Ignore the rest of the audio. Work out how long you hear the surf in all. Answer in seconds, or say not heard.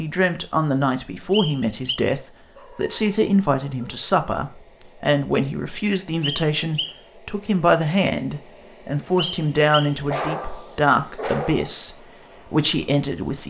not heard.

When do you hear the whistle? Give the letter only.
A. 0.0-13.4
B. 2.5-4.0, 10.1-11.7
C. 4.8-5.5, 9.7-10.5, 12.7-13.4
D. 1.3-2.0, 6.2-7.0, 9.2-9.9
D.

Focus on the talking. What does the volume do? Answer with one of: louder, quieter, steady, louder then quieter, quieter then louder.
steady.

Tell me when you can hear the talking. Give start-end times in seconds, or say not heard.
0.0-13.4.